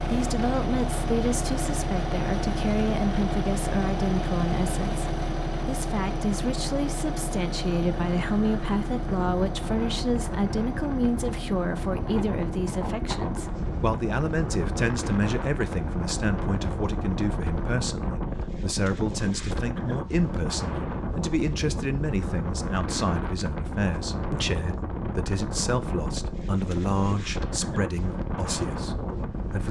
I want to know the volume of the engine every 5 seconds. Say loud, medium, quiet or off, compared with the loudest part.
loud, loud, medium, medium, off, off.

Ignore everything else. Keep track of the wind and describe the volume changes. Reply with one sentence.
The volume of the wind stays about the same.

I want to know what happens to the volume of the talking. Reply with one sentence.
The volume of the talking stays about the same.